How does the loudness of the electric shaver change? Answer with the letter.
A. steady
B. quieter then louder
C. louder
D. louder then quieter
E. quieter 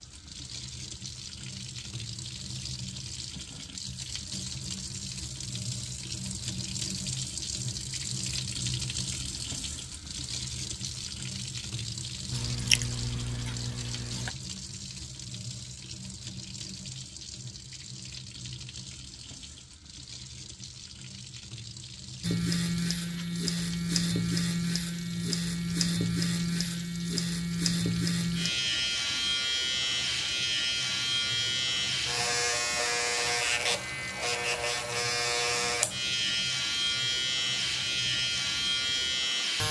A.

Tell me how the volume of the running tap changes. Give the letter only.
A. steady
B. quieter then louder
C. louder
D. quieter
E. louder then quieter
D.